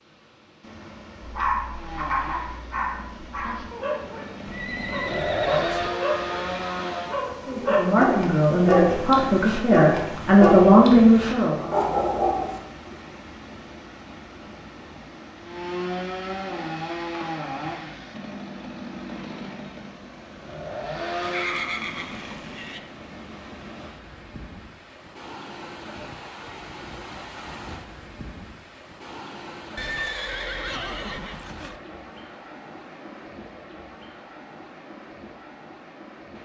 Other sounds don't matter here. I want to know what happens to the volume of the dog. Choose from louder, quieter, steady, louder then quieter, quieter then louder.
louder.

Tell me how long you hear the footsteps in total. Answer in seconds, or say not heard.
not heard.